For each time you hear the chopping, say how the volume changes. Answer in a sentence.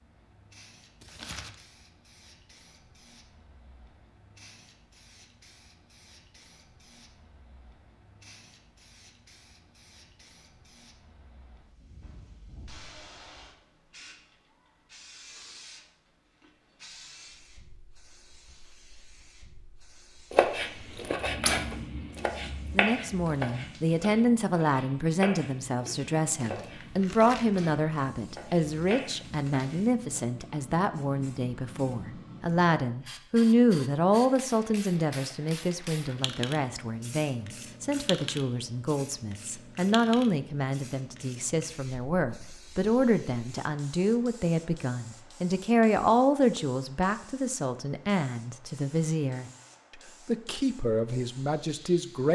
The chopping can be heard from 20.3 to 30.2 s, getting quieter.